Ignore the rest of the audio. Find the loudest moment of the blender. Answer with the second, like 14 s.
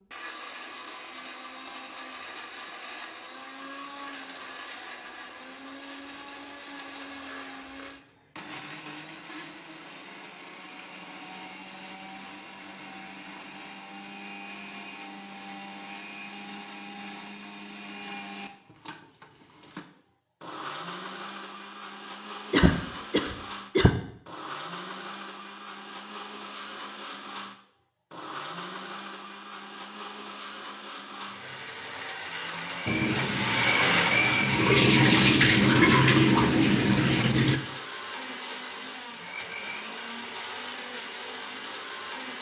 34 s.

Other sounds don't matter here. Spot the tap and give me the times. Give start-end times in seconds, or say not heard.
32.9-37.6.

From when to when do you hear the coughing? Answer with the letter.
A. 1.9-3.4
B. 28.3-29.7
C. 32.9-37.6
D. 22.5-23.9
D.